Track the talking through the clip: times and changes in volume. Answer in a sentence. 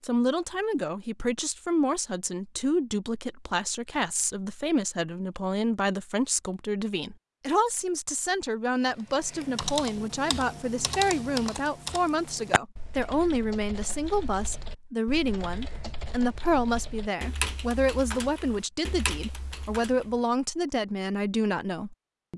The talking can be heard from 0.0 to 22.3 s, at a steady volume.